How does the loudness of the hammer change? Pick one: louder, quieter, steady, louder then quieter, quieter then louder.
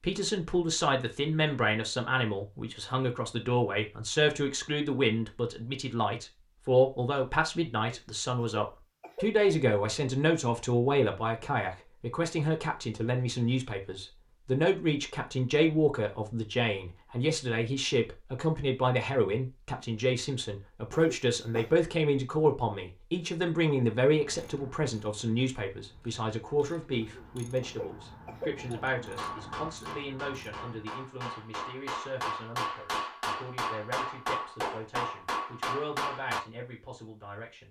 louder.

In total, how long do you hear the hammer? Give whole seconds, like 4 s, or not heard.
7 s.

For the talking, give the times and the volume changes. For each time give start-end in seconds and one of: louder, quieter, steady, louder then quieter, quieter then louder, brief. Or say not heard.
0.0-37.6 quieter.